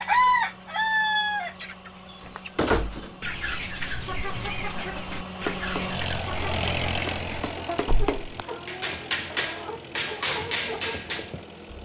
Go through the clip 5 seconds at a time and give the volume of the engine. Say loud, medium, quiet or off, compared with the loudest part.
medium, loud, medium.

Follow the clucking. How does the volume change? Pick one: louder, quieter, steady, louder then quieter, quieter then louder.
quieter.